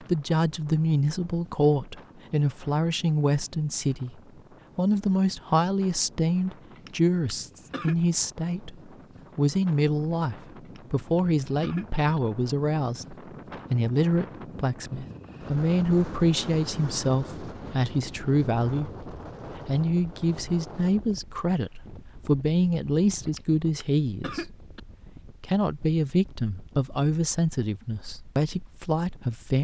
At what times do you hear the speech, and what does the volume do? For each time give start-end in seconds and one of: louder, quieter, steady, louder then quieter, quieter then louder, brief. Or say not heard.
0.0-29.5 steady.